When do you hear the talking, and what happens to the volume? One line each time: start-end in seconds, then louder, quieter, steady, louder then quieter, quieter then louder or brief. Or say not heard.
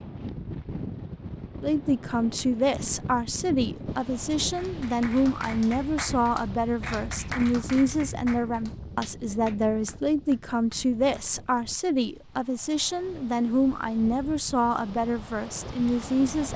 1.6-16.5 steady.